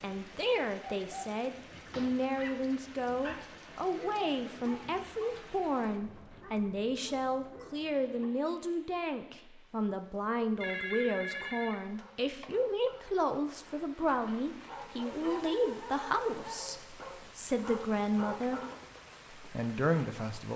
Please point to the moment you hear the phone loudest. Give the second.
11 s.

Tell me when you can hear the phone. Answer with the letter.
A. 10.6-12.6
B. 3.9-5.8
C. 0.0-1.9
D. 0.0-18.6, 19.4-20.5
A.